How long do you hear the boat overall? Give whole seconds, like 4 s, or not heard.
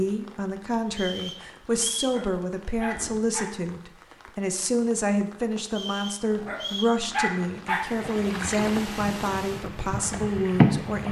3 s.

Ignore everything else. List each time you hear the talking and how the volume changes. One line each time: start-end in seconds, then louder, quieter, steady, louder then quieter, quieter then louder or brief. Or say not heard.
0.0-11.0 steady.